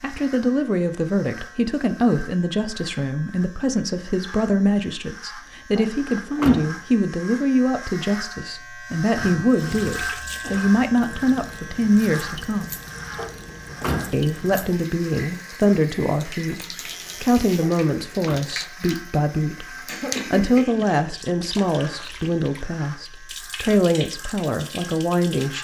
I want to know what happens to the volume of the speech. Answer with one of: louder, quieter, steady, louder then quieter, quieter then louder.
steady.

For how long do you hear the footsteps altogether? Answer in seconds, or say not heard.
not heard.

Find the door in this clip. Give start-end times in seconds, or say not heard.
5.8-6.8, 13.2-14.2, 17.6-18.4.